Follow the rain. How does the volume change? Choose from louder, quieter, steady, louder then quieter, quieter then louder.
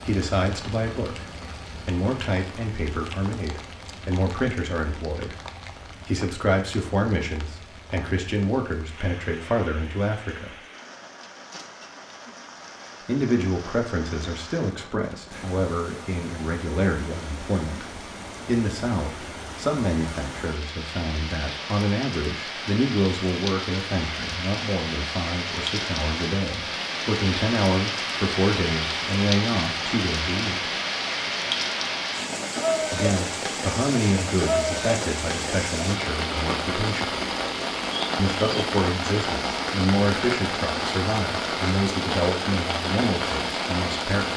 louder.